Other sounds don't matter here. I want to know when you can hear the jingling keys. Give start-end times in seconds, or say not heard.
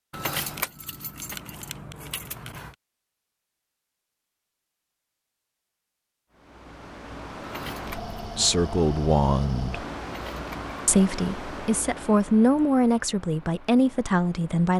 0.1-2.8, 7.4-8.2, 10.1-10.8.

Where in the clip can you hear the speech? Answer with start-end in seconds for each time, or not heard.
8.3-9.8, 10.8-14.7.